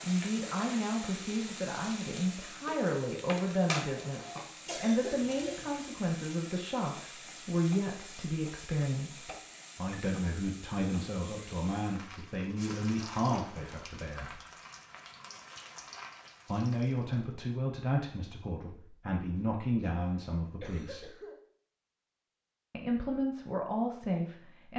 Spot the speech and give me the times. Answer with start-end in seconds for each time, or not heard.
0.0-14.4, 16.4-21.1, 22.7-24.7.